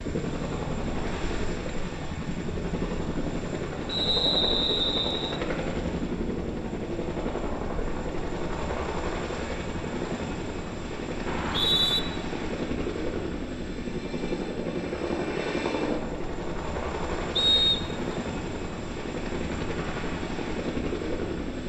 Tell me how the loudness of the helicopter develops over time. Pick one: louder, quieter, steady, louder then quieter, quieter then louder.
steady.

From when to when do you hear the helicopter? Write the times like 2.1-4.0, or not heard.
0.0-21.6.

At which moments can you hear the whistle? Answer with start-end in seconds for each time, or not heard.
3.9-5.4, 11.2-12.0, 17.4-17.9.